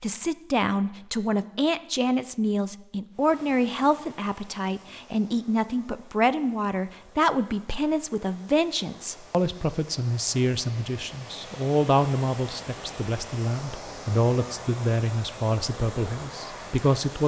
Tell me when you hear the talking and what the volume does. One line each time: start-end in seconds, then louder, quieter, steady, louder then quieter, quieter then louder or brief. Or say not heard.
0.0-17.2 steady.